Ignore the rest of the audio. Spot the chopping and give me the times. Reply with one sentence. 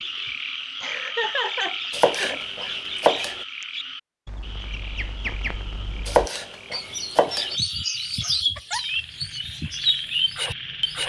The chopping can be heard from 1.9 to 3.4 s and from 6.0 to 7.5 s.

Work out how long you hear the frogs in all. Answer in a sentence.
The frogs can be heard for 11 seconds in total.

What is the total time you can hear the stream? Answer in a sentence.
The stream can't be heard in this clip.